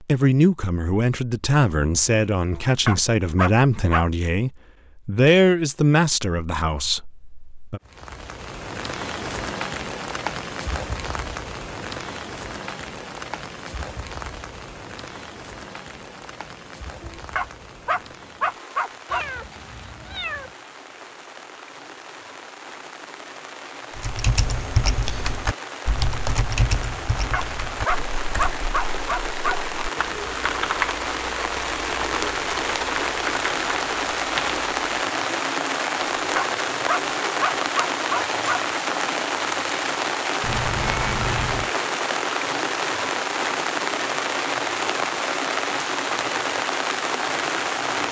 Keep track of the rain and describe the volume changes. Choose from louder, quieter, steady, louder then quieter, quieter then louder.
quieter then louder.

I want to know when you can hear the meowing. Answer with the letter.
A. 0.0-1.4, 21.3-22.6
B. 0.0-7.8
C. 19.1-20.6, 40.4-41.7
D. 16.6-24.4
C.